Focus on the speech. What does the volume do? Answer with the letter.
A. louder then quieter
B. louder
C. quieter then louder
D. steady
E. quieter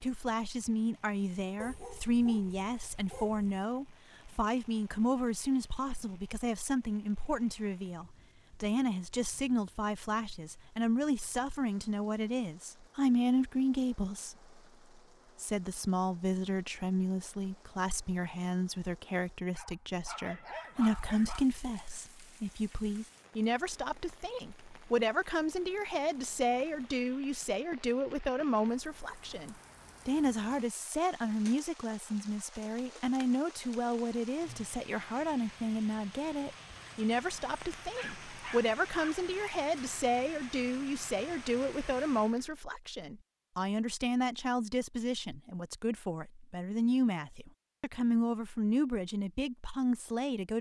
D.